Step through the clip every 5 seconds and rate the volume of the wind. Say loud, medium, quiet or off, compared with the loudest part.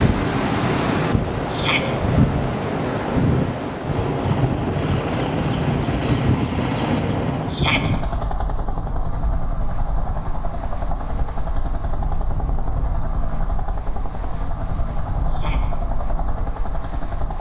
loud, medium, quiet, quiet.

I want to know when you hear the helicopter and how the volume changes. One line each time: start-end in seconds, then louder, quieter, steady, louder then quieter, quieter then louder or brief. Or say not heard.
0.1-17.3 louder then quieter.